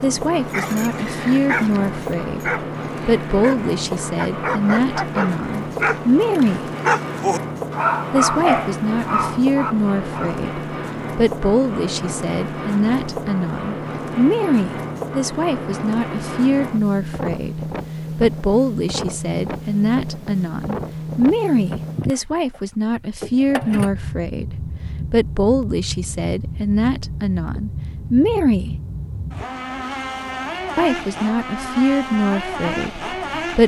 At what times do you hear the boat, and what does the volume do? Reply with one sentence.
The boat can be heard from 0.0 to 33.6 s, at a steady volume.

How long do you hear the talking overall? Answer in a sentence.
The talking can be heard for 30 seconds in total.